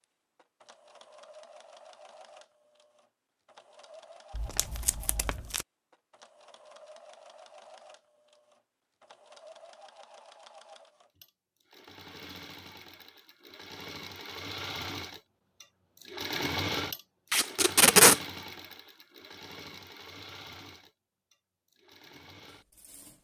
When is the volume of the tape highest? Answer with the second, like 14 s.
18 s.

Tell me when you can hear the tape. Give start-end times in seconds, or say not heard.
4.3-5.7, 17.3-18.2.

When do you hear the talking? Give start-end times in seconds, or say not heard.
not heard.